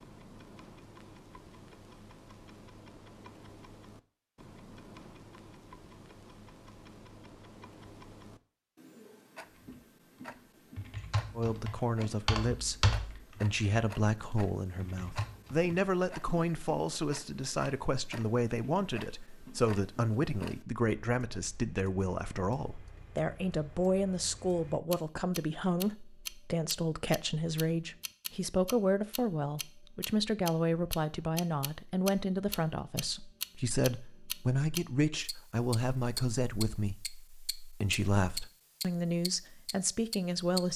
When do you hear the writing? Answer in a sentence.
The writing can't be heard in this clip.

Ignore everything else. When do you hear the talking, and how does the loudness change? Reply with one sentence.
You can hear the talking from 11.3 to 40.7 s, at a steady volume.